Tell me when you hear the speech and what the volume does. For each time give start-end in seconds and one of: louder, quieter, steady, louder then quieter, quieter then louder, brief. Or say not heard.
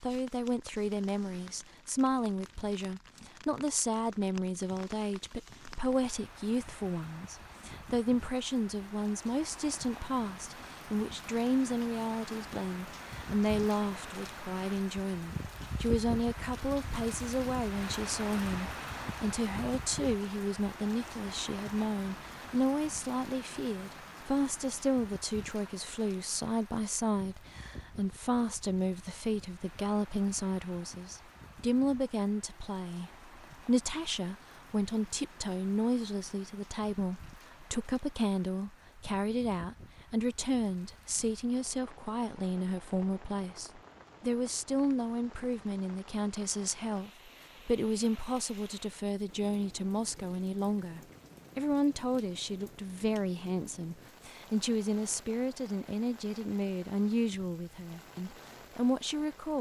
0.0-59.5 steady.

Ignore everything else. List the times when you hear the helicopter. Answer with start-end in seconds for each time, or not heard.
not heard.